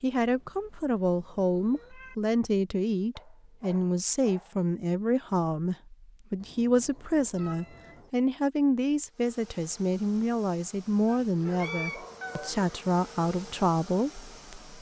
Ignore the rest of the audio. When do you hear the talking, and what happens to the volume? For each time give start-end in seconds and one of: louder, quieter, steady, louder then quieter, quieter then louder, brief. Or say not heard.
0.0-14.7 steady.